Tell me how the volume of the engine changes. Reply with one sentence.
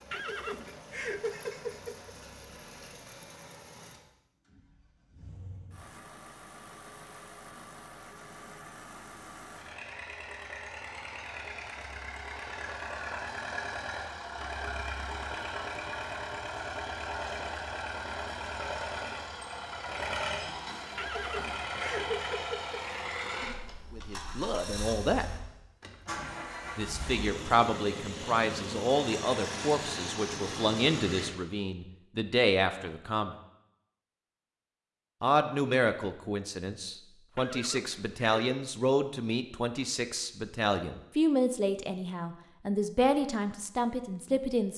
The volume of the engine goes up.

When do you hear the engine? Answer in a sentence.
The engine can be heard from 0.0 to 31.4 s.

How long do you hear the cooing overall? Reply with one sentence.
You can't hear the cooing here.